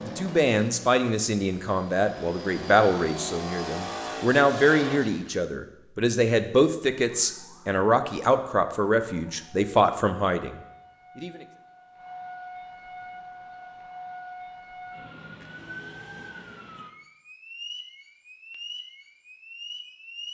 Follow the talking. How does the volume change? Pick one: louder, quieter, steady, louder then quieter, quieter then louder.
steady.